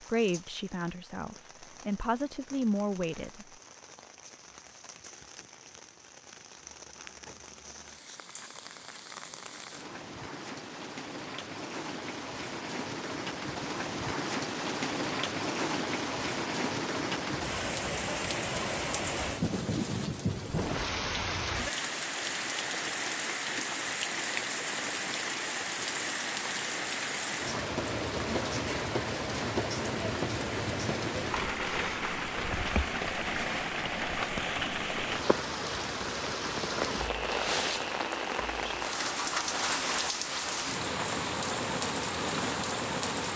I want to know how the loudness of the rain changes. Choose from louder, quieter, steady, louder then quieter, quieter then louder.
louder.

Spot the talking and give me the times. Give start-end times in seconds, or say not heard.
0.1-3.5.